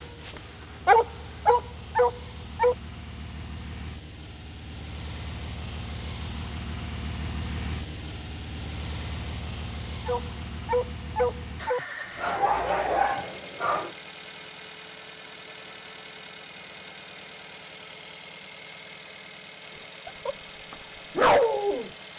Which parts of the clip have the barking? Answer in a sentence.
You can hear the barking from 0.0 to 2.8 s, from 10.1 to 13.9 s and from 20.1 to 21.9 s.